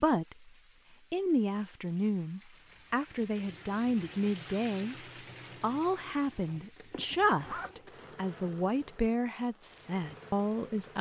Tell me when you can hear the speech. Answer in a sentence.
The speech can be heard from 0.0 to 0.5 s, from 1.1 to 5.0 s and from 5.6 to 10.9 s.